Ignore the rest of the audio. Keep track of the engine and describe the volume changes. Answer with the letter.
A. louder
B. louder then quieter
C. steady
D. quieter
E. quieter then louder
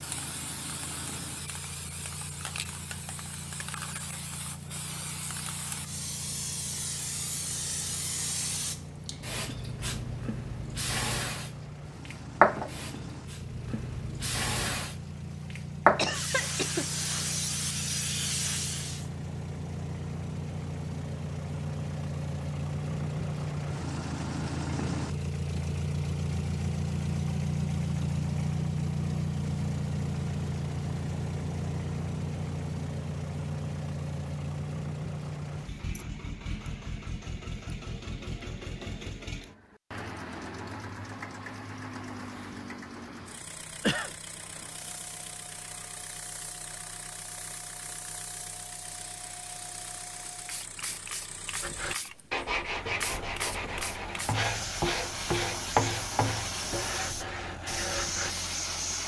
B.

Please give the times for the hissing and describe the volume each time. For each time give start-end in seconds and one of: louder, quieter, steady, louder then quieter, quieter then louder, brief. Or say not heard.
0.0-19.1 louder
44.3-59.0 louder.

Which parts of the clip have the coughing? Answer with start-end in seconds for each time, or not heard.
15.9-17.6, 43.2-44.1.